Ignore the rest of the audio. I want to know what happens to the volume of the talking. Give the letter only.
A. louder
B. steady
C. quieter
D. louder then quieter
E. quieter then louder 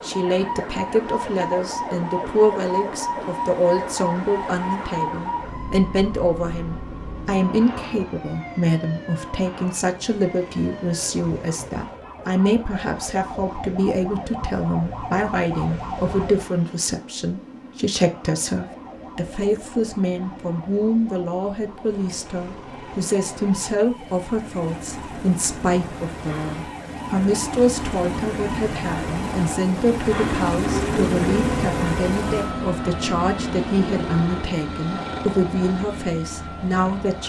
B.